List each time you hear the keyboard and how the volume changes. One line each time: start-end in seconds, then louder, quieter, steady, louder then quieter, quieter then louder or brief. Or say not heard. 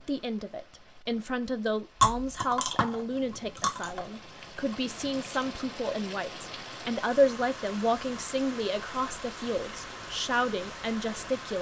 not heard.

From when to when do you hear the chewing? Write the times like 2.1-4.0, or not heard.
2.0-5.7.